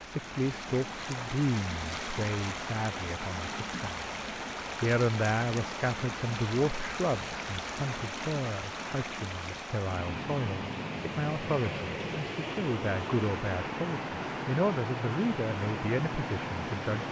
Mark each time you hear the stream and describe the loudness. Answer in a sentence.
The stream can be heard from 0.0 to 17.0 s, at a steady volume.